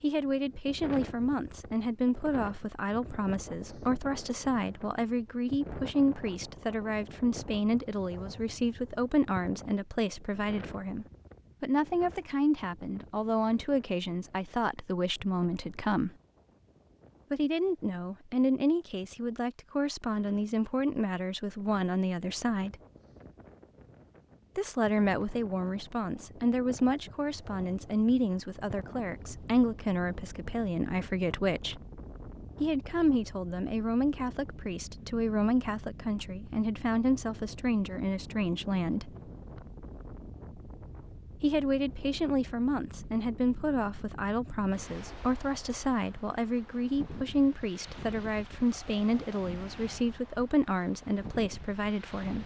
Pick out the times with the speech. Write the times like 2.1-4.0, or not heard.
0.0-16.1, 17.3-22.8, 24.6-31.8, 32.6-39.1, 41.4-52.4.